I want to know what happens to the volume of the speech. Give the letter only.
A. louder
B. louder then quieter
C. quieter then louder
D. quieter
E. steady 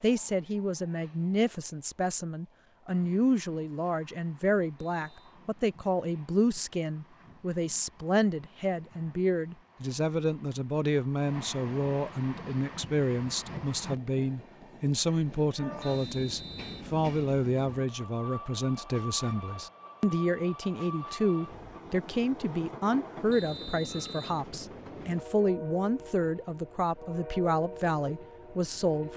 E.